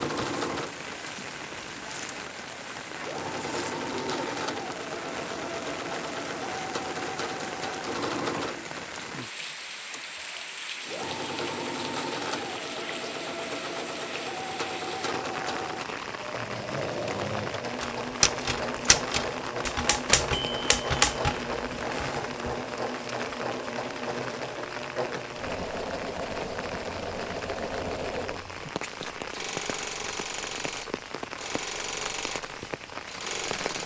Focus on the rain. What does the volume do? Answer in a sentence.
The volume of the rain stays about the same.